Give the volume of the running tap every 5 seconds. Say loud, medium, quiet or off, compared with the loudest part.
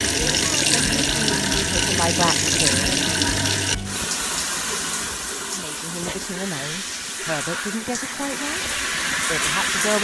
loud, medium.